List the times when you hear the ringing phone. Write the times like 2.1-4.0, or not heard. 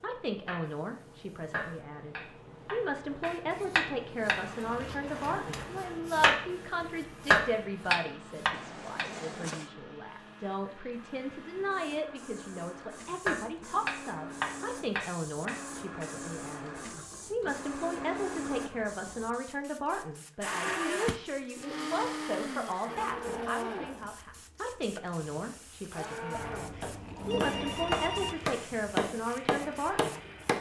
8.5-9.7, 26.3-28.4.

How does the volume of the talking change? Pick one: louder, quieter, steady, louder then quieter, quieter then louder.
steady.